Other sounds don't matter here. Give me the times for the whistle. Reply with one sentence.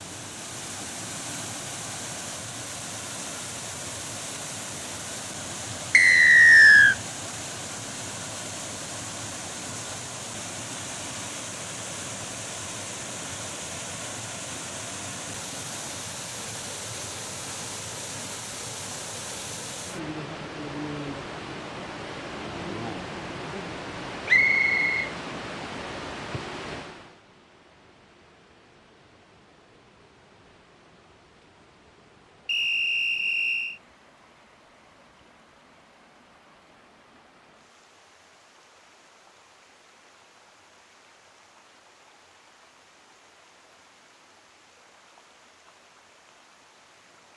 The whistle can be heard from 5.9 to 7.0 s, from 24.2 to 25.1 s and from 32.5 to 33.8 s.